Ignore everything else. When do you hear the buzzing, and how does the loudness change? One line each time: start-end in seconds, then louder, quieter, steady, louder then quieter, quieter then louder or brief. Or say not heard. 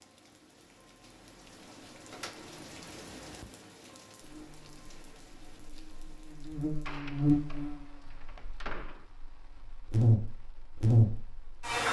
4.2-11.8 louder.